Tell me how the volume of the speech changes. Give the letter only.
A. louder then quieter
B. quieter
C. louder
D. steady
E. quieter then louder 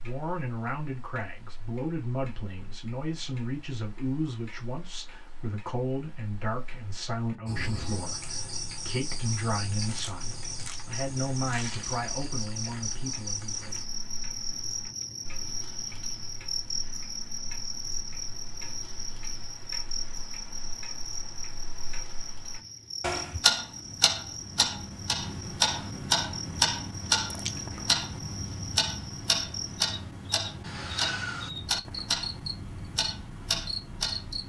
D.